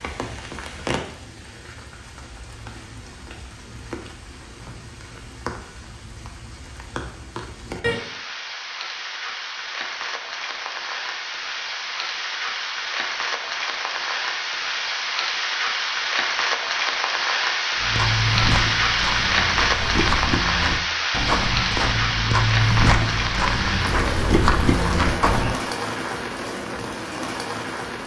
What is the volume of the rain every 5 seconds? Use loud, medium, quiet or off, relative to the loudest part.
quiet, medium, medium, loud, loud, medium.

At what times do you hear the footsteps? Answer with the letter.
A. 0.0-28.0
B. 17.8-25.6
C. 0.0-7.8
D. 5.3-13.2
B.